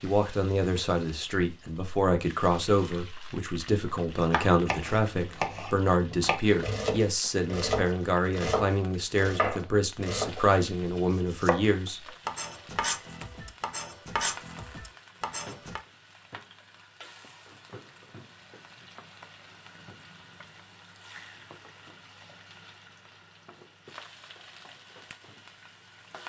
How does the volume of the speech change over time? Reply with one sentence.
The volume of the speech stays about the same.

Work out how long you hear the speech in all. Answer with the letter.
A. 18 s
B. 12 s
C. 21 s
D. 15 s
B.